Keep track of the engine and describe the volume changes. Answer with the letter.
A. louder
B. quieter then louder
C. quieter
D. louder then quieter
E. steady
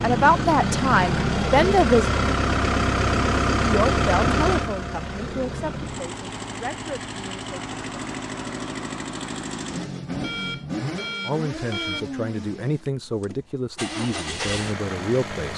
C.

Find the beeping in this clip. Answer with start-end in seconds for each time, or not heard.
10.2-12.1.